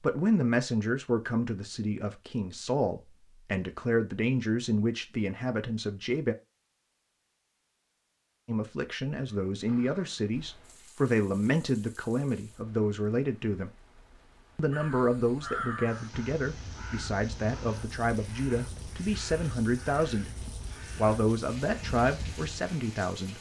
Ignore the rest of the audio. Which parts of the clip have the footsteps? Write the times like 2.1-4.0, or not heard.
not heard.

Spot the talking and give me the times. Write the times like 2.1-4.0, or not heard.
0.0-6.3, 8.4-13.7, 14.6-23.3.